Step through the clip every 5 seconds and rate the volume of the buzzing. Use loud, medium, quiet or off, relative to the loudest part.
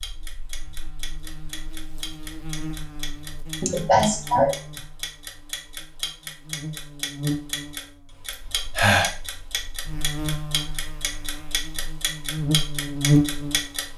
quiet, medium, loud.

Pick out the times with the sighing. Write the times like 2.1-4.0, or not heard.
3.6-4.8, 8.3-9.1.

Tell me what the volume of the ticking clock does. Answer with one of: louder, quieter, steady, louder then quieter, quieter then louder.
louder.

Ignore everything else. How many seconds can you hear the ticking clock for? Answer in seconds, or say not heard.
14 s.